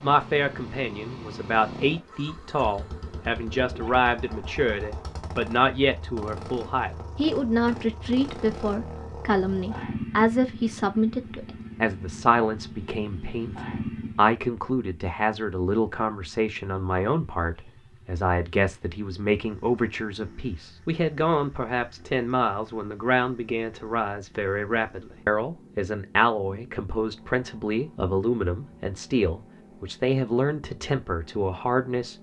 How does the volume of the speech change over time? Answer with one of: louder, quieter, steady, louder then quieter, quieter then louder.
steady.